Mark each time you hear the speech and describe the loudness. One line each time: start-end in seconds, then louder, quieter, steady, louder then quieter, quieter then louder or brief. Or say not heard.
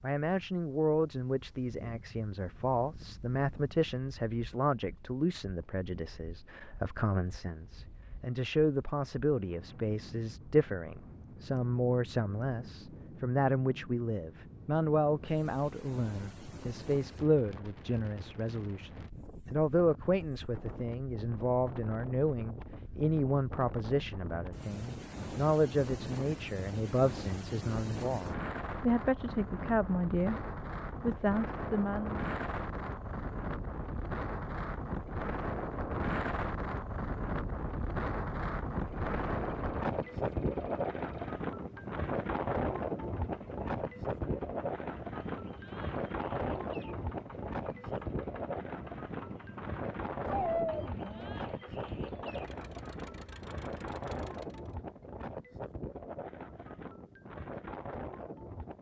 0.0-32.2 steady.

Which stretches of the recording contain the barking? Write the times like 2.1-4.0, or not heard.
50.2-51.4.